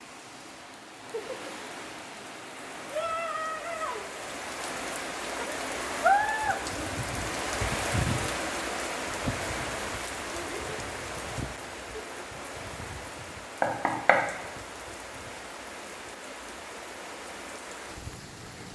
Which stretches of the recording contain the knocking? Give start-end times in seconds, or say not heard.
13.6-14.2.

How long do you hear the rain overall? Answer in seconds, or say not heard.
19 s.